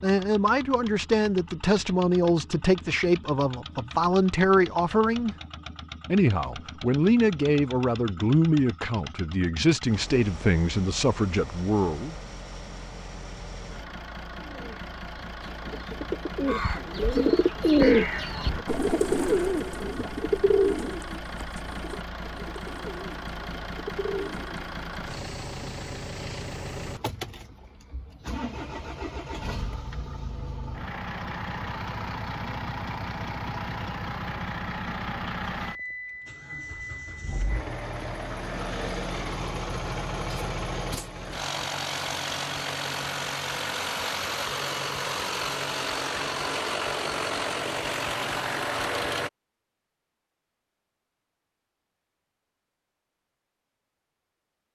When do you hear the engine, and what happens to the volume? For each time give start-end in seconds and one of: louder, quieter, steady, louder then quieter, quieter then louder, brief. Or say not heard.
0.0-49.3 louder.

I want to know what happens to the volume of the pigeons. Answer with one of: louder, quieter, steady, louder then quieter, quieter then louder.
louder then quieter.